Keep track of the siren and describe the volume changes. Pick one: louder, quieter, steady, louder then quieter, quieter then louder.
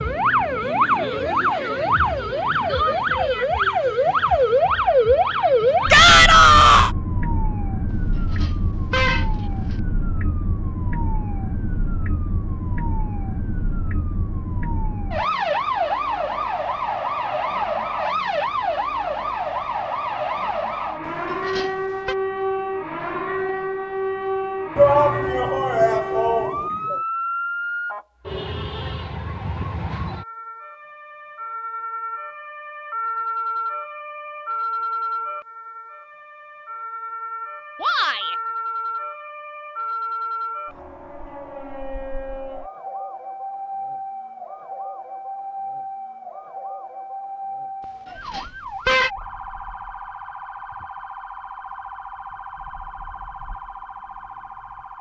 quieter.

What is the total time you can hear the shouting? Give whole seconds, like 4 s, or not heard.
4 s.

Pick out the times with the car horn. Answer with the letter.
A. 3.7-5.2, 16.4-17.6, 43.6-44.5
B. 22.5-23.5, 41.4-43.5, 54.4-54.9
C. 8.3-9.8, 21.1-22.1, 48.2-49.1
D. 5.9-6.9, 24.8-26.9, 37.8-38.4
C.